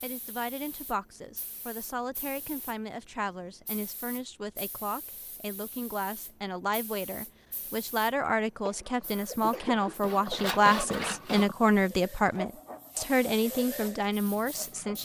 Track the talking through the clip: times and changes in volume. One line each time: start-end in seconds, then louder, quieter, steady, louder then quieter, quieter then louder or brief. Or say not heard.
0.0-15.0 louder.